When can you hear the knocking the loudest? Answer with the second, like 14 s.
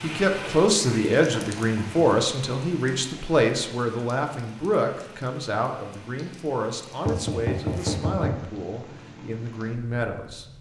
8 s.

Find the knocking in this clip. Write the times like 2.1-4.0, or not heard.
1.3-2.0, 7.0-8.4.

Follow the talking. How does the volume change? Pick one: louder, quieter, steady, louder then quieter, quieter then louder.
quieter.